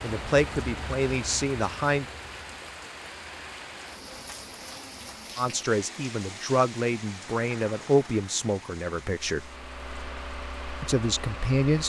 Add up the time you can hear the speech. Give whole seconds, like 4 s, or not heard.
7 s.